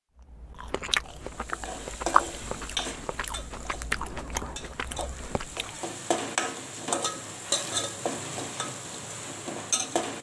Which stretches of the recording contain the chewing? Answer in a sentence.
You can hear the chewing from 0.2 to 5.8 s.